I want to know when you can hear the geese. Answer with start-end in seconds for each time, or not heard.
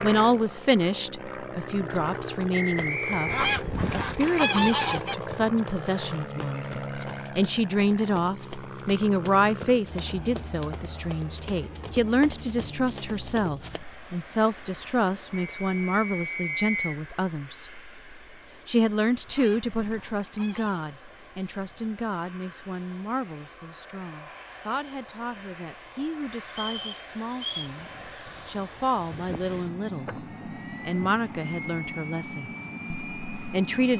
3.2-5.2, 19.2-20.9.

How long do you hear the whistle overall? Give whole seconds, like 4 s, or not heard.
4 s.